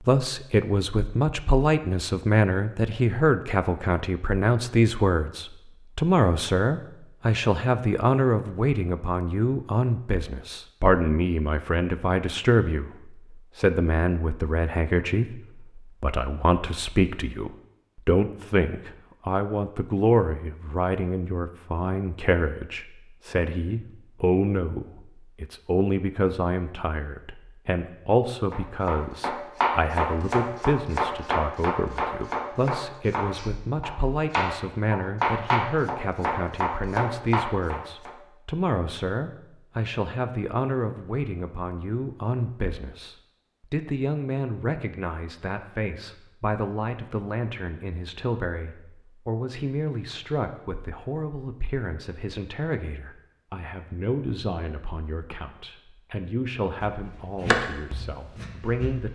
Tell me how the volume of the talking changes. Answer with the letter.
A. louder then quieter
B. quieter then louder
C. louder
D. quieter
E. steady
D.